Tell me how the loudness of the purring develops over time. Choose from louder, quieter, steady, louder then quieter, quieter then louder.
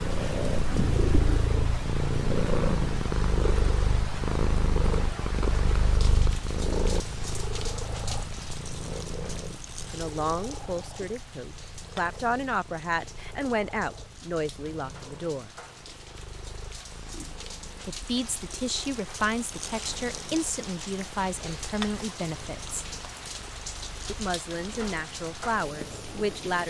quieter.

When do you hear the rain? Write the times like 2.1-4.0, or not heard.
0.0-26.6.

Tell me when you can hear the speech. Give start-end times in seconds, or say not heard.
9.9-15.5, 17.9-22.9, 24.1-26.6.